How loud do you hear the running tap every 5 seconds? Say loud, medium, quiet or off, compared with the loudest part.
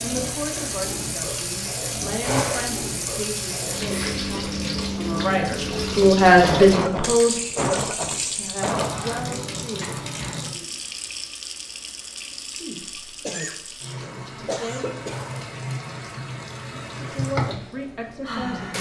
loud, loud, medium, loud.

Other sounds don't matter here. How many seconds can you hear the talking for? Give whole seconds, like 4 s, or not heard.
15 s.